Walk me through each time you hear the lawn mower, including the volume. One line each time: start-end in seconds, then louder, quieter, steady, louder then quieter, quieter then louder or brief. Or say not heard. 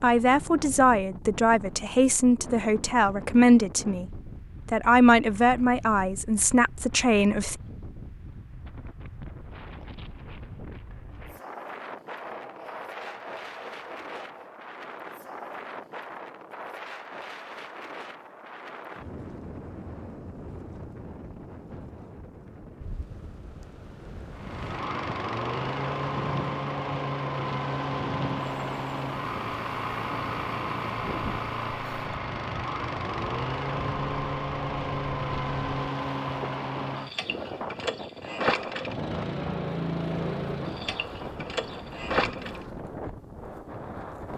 24.4-42.8 steady.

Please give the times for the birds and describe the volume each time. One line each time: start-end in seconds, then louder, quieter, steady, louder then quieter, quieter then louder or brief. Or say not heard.
not heard.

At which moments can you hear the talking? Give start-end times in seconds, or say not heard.
0.0-7.5.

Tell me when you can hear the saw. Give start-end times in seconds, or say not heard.
12.2-14.6.